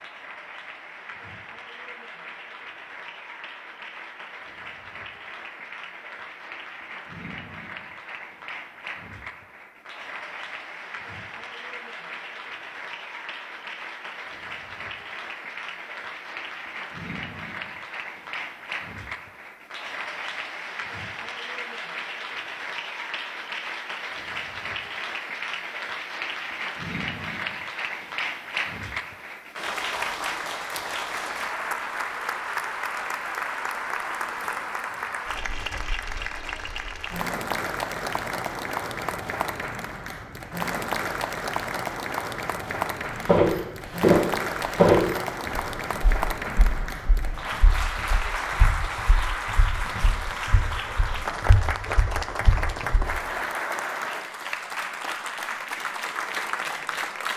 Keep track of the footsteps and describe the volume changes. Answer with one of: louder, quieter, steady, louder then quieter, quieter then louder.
quieter then louder.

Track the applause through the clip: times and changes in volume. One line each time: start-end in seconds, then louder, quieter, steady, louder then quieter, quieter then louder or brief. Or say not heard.
0.0-57.3 louder.